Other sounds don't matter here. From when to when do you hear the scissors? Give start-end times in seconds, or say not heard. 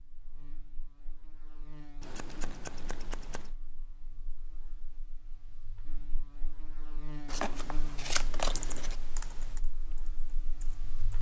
2.0-3.5, 7.2-8.9.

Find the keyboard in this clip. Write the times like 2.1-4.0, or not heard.
7.5-11.1.